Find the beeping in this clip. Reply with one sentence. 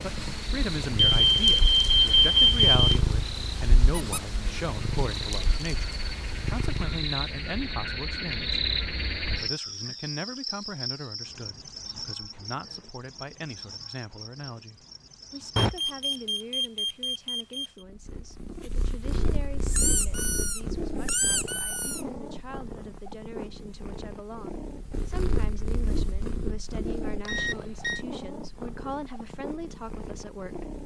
The beeping can be heard from 0.9 to 2.8 s, from 15.6 to 17.6 s and from 27.2 to 28.1 s.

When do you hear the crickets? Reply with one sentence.
The crickets can be heard from 0.0 to 16.4 s.